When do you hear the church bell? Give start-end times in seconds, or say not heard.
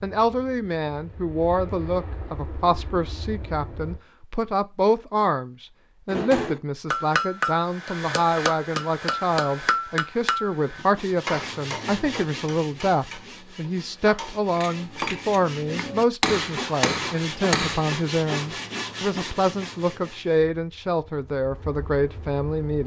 not heard.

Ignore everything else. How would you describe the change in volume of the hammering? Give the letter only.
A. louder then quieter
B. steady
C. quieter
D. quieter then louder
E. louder
D.